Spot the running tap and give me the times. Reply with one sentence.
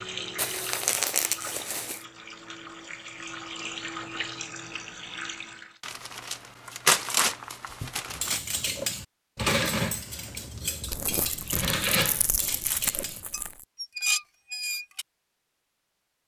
The running tap can be heard from 0.0 to 5.8 s.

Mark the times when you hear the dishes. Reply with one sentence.
The dishes can be heard from 8.1 to 15.1 s.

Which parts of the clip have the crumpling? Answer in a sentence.
The crumpling can be heard from 0.3 to 2.0 s, from 5.8 to 8.4 s and from 10.9 to 13.7 s.